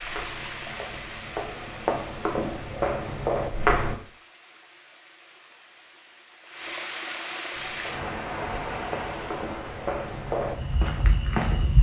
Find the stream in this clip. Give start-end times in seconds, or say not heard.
0.0-11.7.